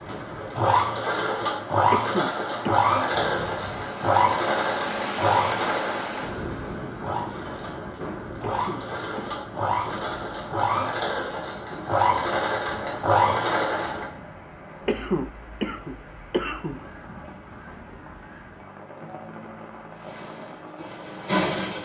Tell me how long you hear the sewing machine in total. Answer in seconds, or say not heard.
16 s.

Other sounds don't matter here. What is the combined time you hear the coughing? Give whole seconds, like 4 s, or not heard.
4 s.